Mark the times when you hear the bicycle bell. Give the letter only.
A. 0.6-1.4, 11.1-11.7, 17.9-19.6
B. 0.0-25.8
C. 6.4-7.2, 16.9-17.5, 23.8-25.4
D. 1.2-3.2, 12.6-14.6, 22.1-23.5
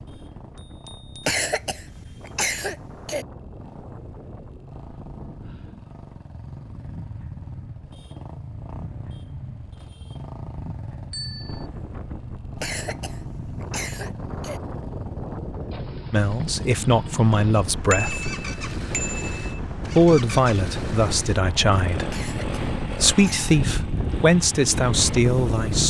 A.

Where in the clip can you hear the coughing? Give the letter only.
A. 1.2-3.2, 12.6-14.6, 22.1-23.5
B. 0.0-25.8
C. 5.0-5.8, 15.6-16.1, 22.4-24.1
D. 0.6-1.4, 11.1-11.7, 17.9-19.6
A.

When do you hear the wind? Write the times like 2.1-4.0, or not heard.
0.0-25.8.